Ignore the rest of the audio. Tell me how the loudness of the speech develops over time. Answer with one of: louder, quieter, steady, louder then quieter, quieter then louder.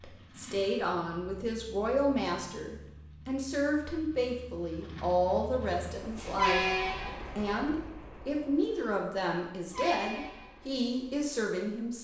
steady.